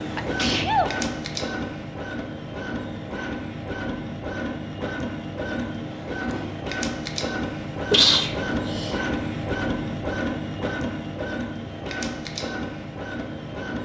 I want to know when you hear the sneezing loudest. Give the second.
8 s.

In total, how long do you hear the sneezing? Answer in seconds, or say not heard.
2 s.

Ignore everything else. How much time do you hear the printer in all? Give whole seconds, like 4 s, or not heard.
14 s.